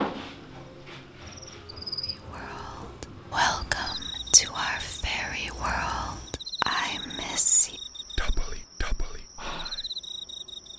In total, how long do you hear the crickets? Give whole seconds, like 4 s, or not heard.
11 s.